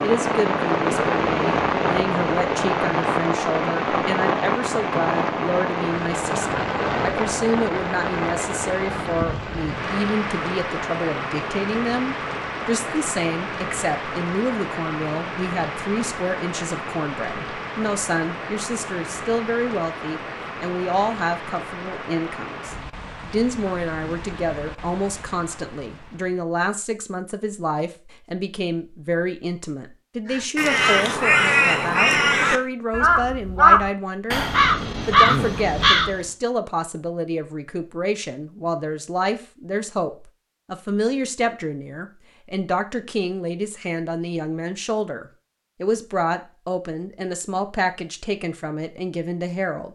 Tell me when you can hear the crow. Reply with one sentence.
The crow can be heard from 30.3 to 36.2 s.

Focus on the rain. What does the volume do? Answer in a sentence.
The volume of the rain goes down.